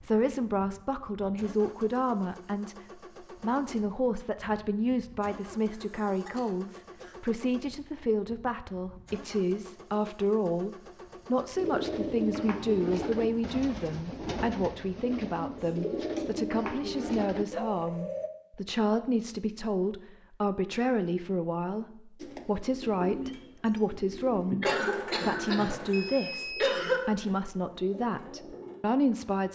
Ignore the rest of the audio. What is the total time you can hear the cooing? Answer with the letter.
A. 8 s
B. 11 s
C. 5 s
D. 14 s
D.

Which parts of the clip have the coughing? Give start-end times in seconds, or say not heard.
5.7-7.2, 15.6-16.2, 24.6-27.1.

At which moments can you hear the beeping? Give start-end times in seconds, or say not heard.
25.9-26.7.